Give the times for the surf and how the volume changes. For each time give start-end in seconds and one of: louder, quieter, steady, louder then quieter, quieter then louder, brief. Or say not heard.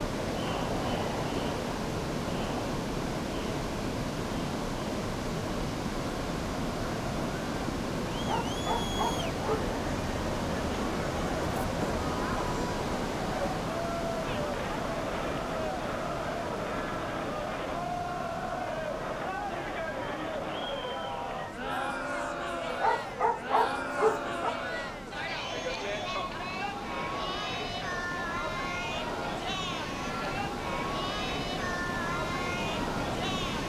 0.0-33.6 quieter then louder.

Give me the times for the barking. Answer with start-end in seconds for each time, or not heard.
8.2-9.7, 22.6-24.6.